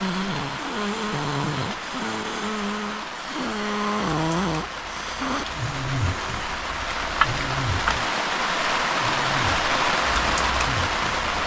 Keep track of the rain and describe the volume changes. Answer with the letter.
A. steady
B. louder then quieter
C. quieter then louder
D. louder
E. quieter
D.